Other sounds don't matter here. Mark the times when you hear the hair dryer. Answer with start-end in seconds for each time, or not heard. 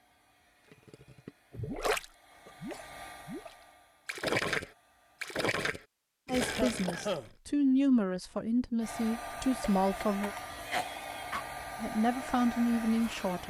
0.0-5.4, 8.8-13.4.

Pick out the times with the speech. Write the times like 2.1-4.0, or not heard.
6.2-10.3, 11.8-13.4.